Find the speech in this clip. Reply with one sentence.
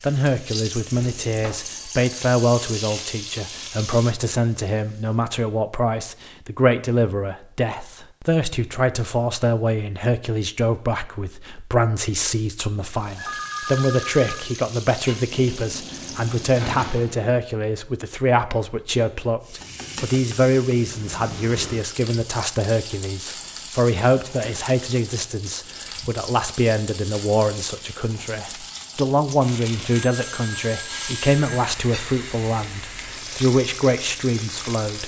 You can hear the speech from 0.0 to 35.0 s.